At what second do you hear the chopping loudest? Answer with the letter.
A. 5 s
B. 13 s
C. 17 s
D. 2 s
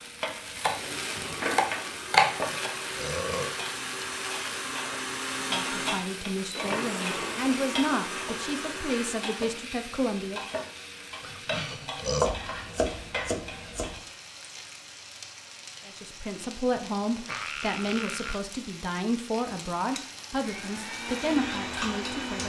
D.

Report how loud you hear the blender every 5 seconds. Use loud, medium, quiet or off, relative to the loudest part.
loud, loud, off, off, loud.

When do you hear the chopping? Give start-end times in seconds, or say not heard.
0.6-2.4, 12.2-14.0.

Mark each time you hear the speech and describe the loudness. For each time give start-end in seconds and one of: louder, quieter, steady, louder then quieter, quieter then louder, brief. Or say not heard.
5.3-10.4 louder then quieter
15.8-22.4 steady.